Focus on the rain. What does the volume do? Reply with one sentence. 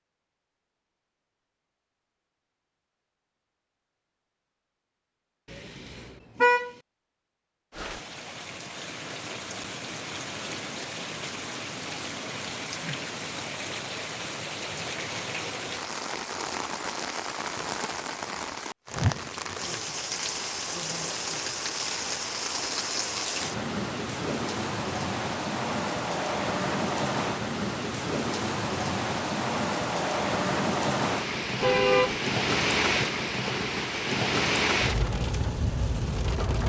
The loudness of the rain goes up.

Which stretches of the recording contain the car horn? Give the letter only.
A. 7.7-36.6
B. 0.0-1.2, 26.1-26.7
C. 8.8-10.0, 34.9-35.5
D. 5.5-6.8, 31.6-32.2
D.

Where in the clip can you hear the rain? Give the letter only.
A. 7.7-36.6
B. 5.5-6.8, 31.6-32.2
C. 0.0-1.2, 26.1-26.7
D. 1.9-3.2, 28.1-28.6
A.